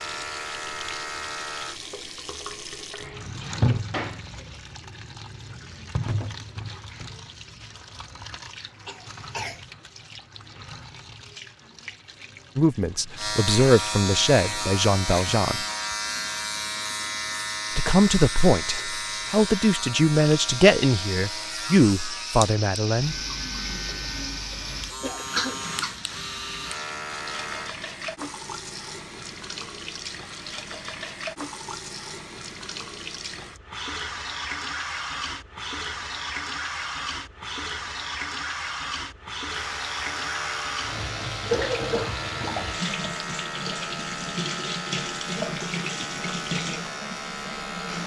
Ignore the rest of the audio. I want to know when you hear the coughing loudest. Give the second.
42 s.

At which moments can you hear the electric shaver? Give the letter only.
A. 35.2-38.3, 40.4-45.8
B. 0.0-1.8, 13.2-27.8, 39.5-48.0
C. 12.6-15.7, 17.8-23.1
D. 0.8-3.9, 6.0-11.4
B.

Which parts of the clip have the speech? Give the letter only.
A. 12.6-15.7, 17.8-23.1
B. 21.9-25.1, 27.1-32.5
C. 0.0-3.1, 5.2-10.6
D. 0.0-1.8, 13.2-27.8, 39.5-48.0
A.